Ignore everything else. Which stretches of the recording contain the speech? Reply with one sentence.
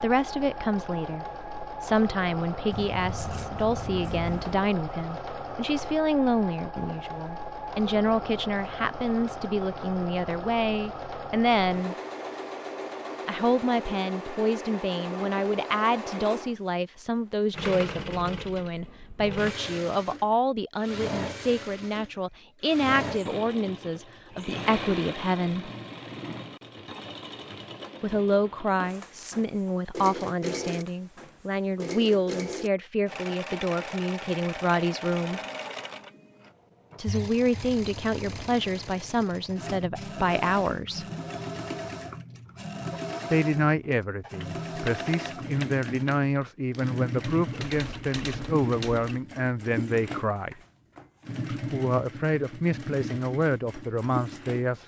The speech can be heard from 0.0 to 11.9 s, from 13.2 to 25.7 s, from 28.0 to 35.4 s, from 37.0 to 41.0 s, from 43.3 to 50.5 s and from 51.5 to 54.8 s.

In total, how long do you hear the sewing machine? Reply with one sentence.
The sewing machine can be heard for 55 seconds in total.